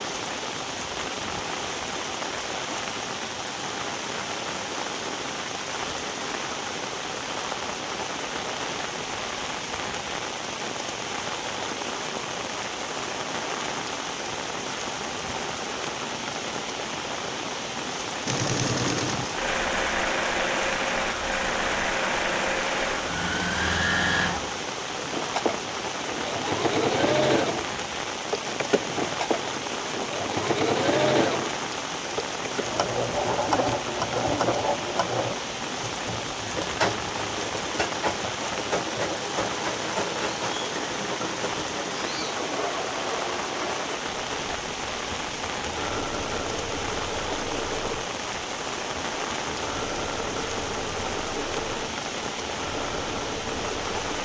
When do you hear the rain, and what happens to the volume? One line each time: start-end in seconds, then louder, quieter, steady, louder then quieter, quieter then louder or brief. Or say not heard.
0.0-54.2 steady.